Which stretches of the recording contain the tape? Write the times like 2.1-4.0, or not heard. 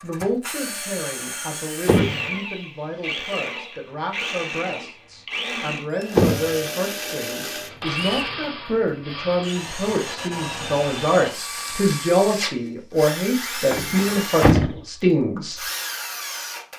not heard.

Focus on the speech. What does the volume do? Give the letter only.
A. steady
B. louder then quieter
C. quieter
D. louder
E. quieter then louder
D.